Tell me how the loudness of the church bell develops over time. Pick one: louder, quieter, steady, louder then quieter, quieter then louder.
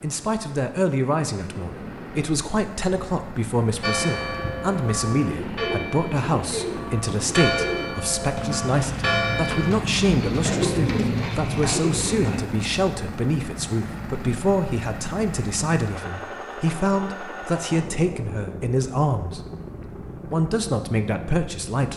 quieter then louder.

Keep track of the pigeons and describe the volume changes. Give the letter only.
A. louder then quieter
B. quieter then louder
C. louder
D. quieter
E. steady
C.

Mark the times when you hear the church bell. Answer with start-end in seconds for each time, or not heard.
3.8-9.8.